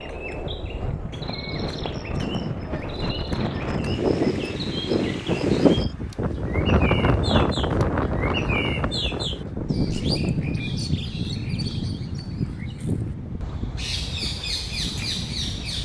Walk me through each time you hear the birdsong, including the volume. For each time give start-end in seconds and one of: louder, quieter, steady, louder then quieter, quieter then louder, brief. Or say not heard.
0.0-15.8 louder.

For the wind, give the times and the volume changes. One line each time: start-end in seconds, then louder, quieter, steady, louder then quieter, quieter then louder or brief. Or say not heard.
0.0-15.8 louder then quieter.